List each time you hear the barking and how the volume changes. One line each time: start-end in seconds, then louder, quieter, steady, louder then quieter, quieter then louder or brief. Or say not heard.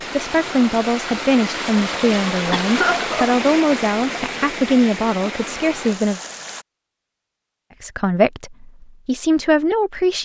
not heard.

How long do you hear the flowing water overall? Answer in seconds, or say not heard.
7 s.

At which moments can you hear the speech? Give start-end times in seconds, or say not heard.
0.1-6.2, 7.8-10.2.